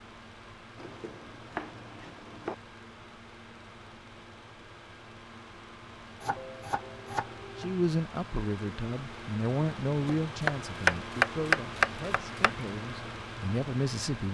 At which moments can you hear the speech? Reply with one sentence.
The speech can be heard from 7.5 to 14.2 s.